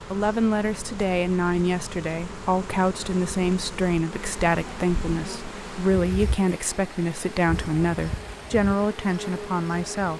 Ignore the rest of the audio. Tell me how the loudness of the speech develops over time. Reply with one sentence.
The volume of the speech stays about the same.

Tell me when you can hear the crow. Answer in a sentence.
You can't hear the crow here.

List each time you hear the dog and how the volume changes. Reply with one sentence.
The dog can't be heard in this clip.